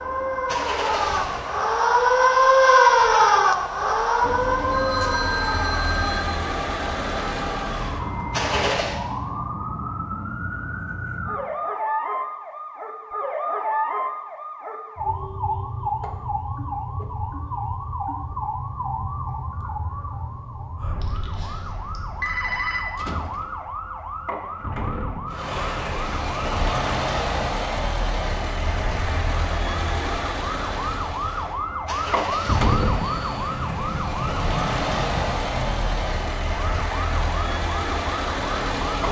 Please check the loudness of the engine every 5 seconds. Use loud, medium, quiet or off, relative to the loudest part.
medium, loud, off, off, off, loud, loud, loud.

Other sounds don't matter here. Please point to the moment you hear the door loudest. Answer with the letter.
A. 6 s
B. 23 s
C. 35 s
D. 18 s
C.